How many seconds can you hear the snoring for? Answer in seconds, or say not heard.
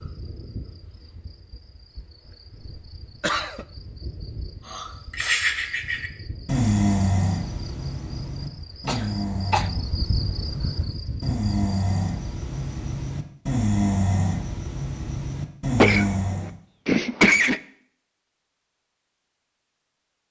12 s.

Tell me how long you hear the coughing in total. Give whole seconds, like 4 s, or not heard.
3 s.